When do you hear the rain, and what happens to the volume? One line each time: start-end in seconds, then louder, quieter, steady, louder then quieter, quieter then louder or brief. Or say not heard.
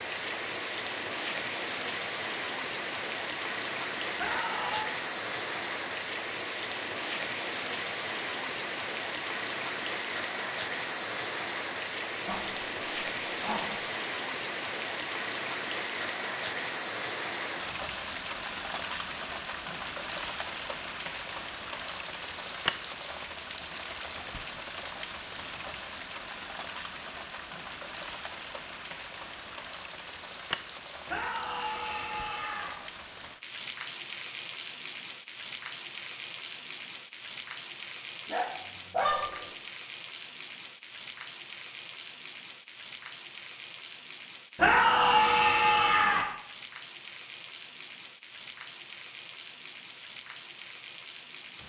0.0-51.6 quieter.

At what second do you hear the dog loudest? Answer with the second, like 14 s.
39 s.